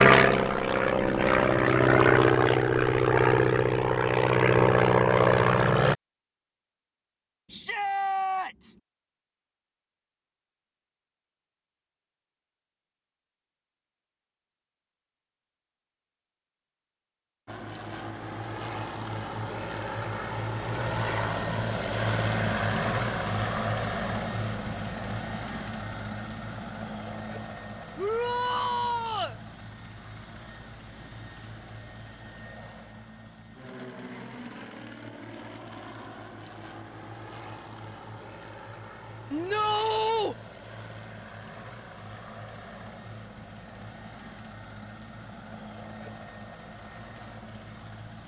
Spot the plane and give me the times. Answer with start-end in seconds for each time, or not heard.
0.0-6.0, 17.4-48.2.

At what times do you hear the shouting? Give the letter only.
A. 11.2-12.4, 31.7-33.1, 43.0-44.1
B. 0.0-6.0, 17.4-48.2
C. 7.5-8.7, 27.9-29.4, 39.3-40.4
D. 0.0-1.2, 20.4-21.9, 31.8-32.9
C.